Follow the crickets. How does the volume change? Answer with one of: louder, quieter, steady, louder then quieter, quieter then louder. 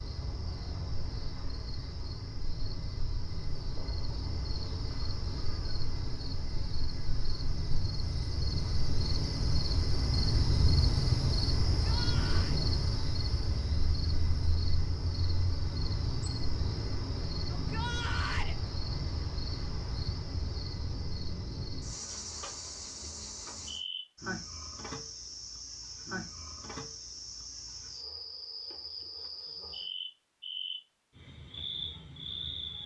louder then quieter.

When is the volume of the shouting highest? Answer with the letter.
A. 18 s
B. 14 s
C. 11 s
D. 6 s
A.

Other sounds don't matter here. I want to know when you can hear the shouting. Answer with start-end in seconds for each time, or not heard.
11.8-12.6, 17.5-18.6.